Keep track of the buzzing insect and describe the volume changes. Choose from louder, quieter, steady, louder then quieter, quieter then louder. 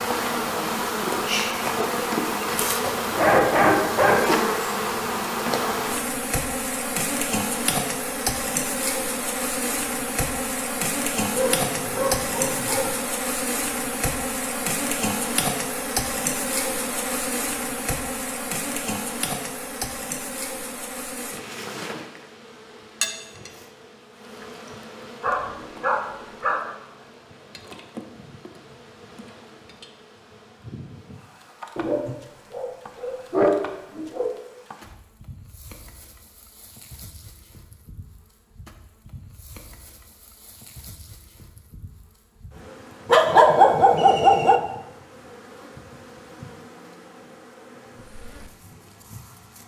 quieter.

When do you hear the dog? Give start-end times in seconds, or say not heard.
2.8-4.2, 11.3-12.9, 25.2-26.6, 31.8-34.3, 43.1-44.6.